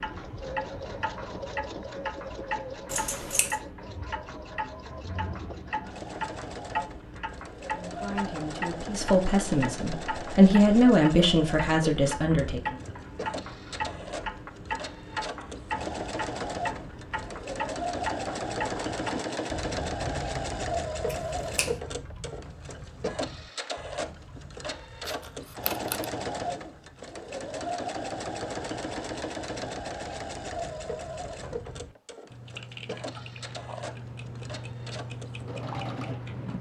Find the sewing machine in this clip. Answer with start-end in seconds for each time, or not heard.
0.0-36.4.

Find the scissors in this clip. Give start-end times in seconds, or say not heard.
2.9-3.6, 21.1-21.8, 25.1-26.1.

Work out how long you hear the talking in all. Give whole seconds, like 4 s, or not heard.
5 s.